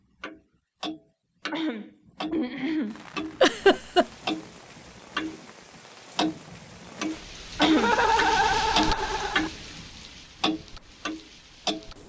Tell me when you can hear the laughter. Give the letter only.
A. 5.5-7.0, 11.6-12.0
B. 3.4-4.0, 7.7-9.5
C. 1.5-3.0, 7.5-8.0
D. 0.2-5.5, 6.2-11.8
B.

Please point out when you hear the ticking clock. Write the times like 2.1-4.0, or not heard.
0.2-5.5, 6.2-11.8.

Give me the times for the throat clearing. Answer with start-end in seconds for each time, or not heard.
1.5-3.0, 7.5-8.0.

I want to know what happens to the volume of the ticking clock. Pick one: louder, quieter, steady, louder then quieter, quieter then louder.
louder.